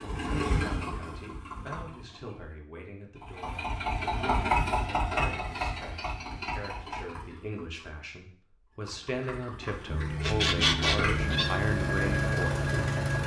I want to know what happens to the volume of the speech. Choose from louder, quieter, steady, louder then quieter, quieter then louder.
louder.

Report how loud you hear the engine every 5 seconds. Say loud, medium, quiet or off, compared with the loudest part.
loud, medium, loud.